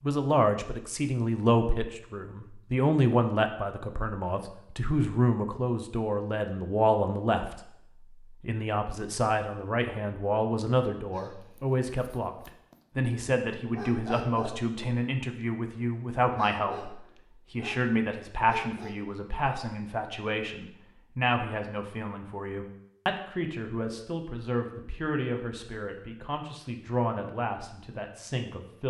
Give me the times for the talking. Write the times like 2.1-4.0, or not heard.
0.0-28.8.